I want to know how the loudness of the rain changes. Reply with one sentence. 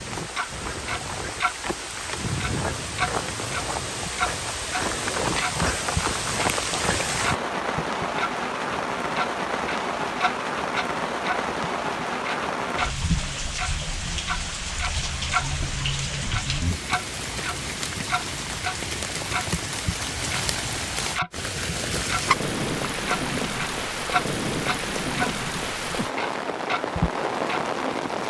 The volume of the rain stays about the same.